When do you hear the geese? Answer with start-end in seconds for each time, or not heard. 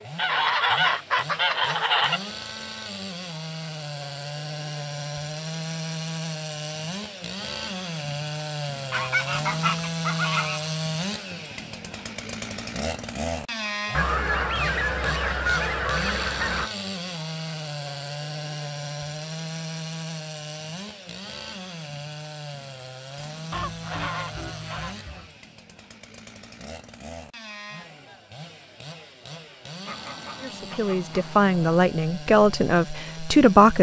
0.1-2.2, 8.9-10.7, 13.9-16.7, 23.5-25.4, 29.9-31.8.